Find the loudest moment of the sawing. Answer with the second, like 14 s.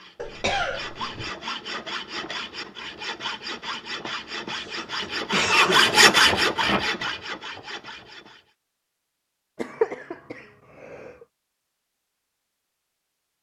6 s.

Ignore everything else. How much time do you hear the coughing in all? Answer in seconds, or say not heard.
4 s.